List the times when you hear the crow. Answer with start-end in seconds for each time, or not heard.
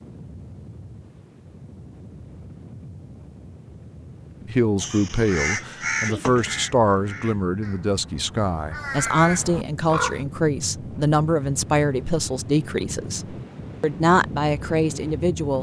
4.8-10.2.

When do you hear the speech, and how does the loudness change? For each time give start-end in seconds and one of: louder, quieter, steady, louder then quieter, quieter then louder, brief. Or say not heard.
4.4-15.5 steady.